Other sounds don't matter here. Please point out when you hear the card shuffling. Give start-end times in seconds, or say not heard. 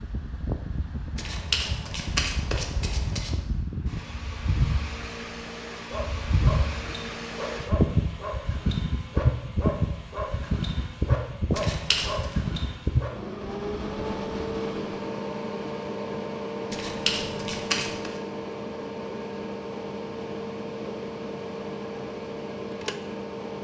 1.1-3.4, 11.5-12.3, 16.7-18.1.